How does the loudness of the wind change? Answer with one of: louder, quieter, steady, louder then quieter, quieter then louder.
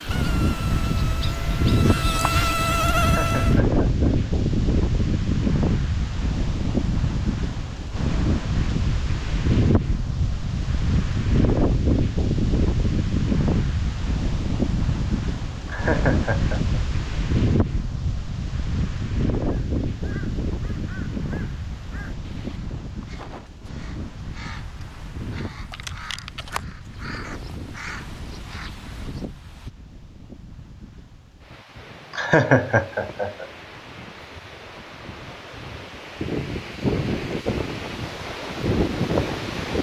quieter then louder.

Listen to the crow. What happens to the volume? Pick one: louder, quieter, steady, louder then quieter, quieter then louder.
louder.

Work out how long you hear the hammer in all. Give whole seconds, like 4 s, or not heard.
not heard.